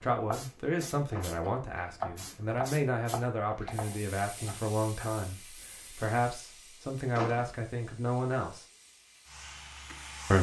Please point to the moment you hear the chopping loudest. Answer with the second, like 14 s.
2 s.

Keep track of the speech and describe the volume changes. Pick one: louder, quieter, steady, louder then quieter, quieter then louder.
steady.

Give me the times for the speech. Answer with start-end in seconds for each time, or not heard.
0.0-8.7.